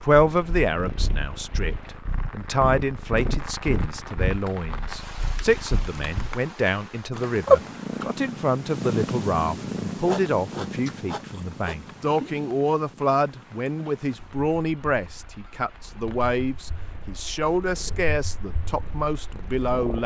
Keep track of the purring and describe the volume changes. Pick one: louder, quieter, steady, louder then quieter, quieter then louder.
louder then quieter.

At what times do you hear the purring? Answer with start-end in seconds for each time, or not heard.
0.1-20.0.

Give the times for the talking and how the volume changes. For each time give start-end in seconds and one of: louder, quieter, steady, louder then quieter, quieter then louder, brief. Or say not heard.
0.0-20.0 steady.